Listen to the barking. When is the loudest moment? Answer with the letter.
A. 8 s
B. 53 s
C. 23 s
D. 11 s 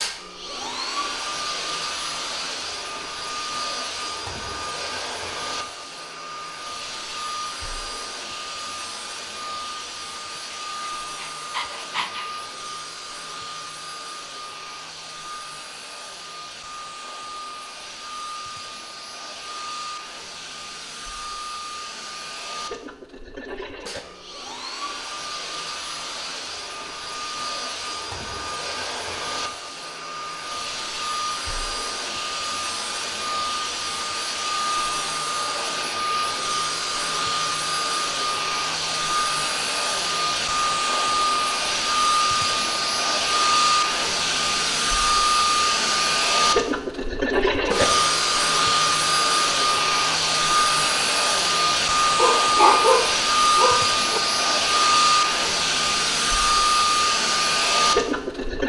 B.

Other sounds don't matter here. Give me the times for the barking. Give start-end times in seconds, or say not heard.
10.3-12.3, 52.1-54.2.